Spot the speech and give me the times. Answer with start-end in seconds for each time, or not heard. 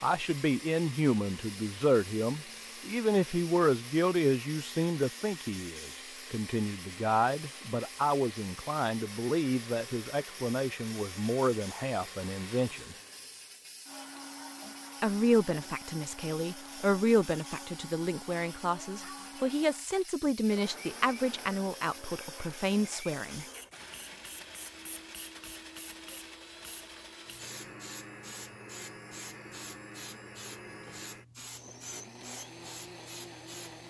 0.0-12.9, 15.0-23.4.